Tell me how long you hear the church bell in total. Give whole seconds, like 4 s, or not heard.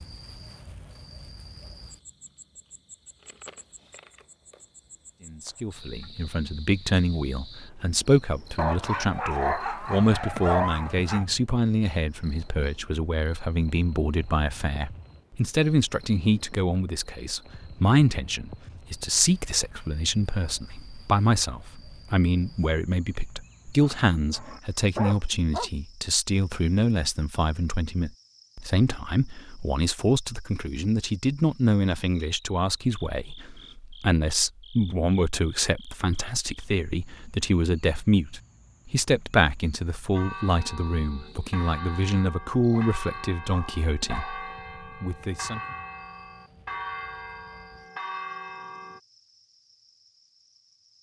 9 s.